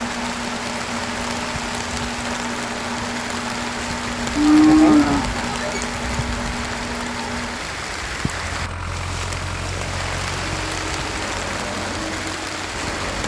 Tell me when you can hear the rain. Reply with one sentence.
The rain can be heard from 0.0 to 13.2 s.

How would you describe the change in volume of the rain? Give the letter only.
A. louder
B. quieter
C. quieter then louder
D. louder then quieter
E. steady
E.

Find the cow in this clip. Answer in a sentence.
You can hear the cow from 4.3 to 5.8 s.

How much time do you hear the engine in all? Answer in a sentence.
The engine can be heard for 13 seconds in total.